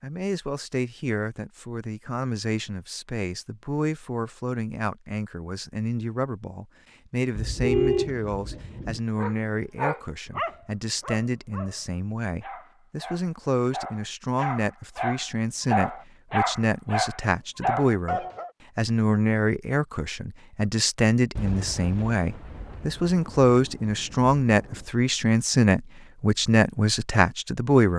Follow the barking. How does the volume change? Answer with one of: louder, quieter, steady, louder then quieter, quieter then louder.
quieter then louder.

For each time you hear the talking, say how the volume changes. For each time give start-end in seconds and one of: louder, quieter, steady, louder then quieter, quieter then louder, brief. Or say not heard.
0.0-27.9 louder.